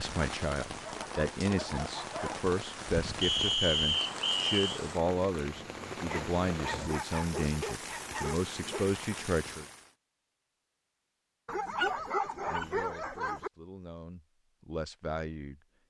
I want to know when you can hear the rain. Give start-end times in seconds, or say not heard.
0.0-9.9.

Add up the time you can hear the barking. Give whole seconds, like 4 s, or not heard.
7 s.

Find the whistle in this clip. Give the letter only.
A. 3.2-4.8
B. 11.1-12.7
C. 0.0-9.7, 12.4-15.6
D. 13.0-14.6
A.